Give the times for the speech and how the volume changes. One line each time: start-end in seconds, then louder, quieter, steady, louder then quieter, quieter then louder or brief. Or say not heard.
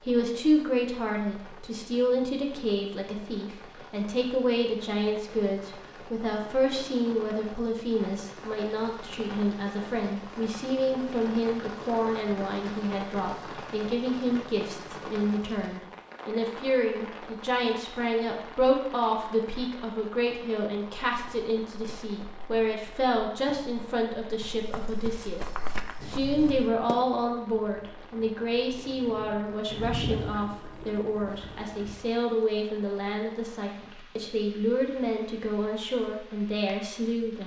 0.0-37.4 steady.